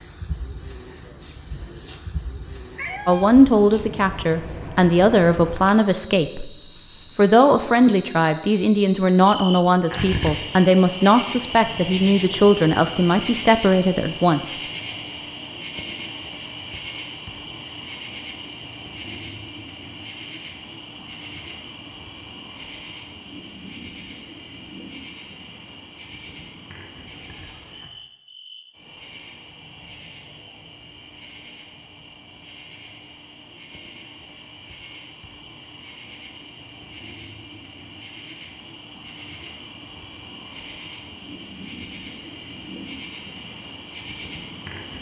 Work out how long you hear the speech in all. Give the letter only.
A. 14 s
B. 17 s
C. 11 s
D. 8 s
C.